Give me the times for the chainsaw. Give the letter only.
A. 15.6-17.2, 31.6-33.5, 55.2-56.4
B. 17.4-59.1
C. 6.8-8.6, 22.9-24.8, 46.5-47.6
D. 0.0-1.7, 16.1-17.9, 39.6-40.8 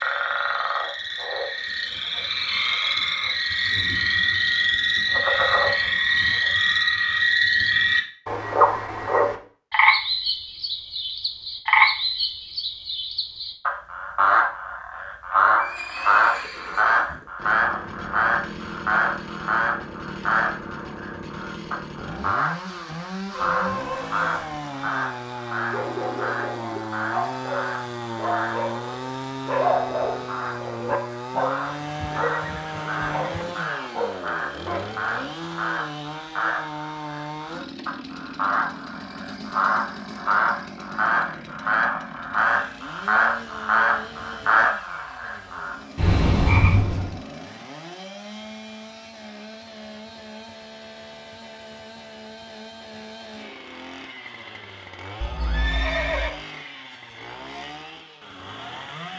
B.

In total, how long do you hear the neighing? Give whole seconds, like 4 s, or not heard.
5 s.